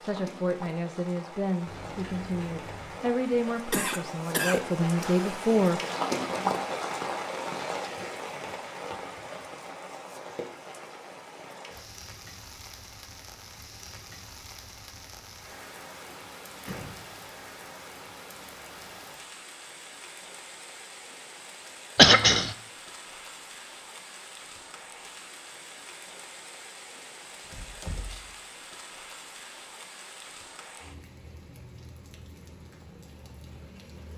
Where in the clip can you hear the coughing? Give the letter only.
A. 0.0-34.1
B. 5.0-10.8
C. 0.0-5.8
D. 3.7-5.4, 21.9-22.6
D.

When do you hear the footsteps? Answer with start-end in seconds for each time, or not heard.
not heard.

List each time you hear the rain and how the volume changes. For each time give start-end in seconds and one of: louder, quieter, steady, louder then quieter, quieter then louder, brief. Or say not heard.
0.0-34.1 quieter.